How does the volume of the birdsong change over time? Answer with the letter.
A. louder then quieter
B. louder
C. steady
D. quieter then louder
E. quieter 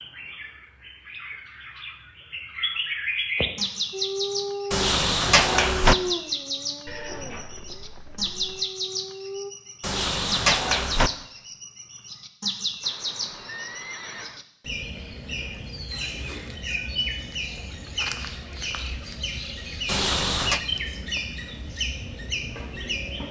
C.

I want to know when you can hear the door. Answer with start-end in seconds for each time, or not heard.
4.7-6.0, 9.8-11.1, 19.9-20.6.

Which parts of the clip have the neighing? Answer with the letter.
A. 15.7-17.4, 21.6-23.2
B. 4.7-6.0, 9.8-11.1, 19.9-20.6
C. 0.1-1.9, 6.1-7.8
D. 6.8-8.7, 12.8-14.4
D.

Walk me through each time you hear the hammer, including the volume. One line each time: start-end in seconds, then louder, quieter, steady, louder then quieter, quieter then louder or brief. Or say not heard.
not heard.